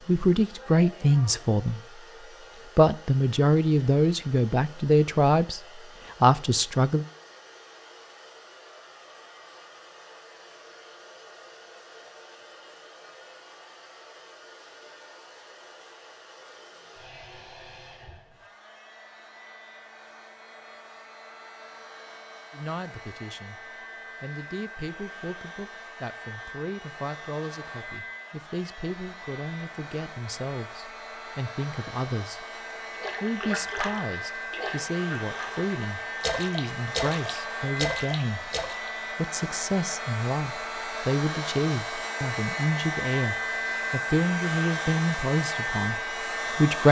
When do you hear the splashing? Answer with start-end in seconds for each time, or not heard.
33.0-38.9.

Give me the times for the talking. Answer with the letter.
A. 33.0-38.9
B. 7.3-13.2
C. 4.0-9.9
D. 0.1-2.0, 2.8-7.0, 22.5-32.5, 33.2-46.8
D.